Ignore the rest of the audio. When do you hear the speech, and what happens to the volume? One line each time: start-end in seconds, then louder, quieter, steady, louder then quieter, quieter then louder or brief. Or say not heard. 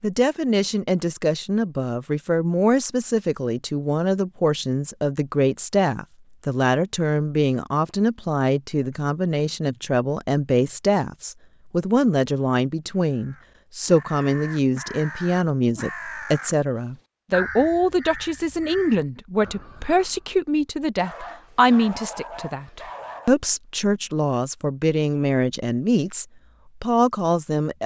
0.0-27.8 steady.